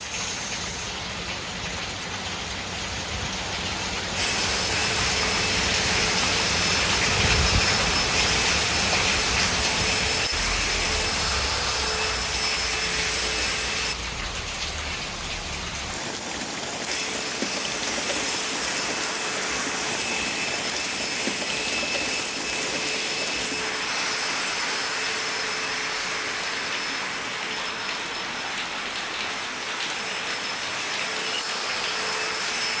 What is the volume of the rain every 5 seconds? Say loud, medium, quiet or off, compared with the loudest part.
medium, loud, medium, medium, medium, medium, medium.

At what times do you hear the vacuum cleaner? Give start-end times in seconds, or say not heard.
4.2-13.9, 16.9-32.7.